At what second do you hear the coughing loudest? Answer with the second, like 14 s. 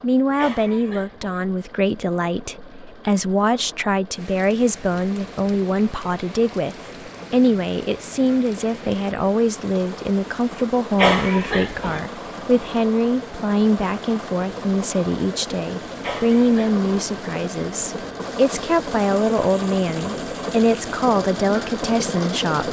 11 s.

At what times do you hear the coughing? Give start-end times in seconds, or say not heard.
0.3-1.4, 10.9-12.0, 16.0-16.8.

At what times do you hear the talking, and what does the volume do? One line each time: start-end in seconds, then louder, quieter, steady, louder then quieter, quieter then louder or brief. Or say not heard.
0.0-22.6 steady.